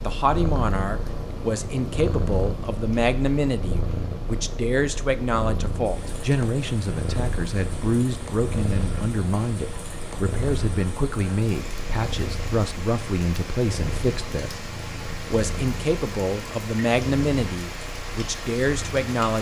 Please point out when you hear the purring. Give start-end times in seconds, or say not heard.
0.0-19.1.